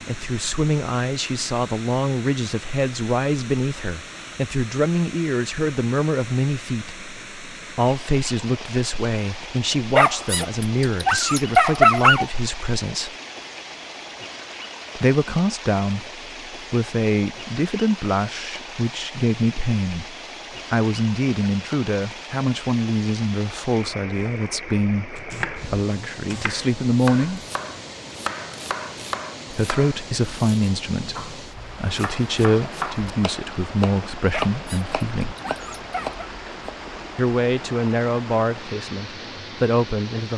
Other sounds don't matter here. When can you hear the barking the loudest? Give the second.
12 s.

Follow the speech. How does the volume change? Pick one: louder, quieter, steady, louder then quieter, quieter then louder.
steady.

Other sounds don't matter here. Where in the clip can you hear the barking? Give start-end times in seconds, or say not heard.
9.9-12.2, 34.3-36.2.